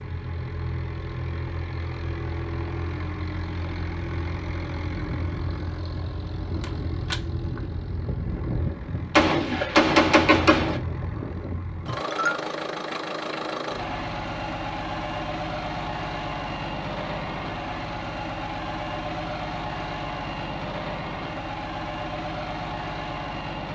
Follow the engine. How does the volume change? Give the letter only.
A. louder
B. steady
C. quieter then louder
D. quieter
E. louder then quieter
B.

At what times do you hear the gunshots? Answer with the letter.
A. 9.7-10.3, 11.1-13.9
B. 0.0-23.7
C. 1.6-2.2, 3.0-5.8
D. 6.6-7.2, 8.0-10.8
D.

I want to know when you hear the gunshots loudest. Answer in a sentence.
The volume of the gunshots peaks at 10 seconds.